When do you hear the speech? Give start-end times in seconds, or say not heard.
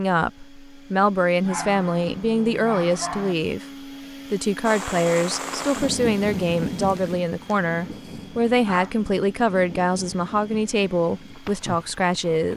0.0-3.6, 4.3-12.5.